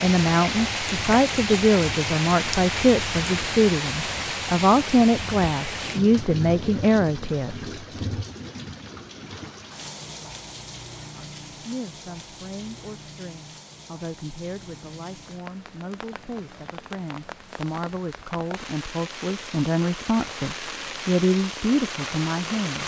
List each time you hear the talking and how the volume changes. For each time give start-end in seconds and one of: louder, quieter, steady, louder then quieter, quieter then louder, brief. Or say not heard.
0.0-7.7 steady
11.2-22.8 louder.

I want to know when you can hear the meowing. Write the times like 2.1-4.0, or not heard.
not heard.